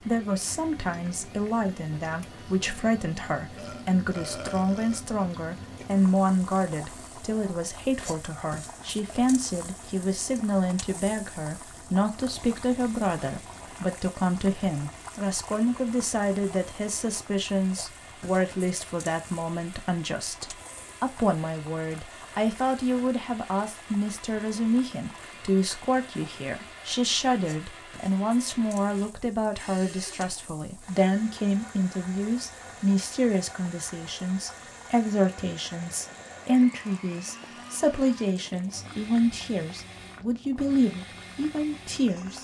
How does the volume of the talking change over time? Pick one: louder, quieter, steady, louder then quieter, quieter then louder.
steady.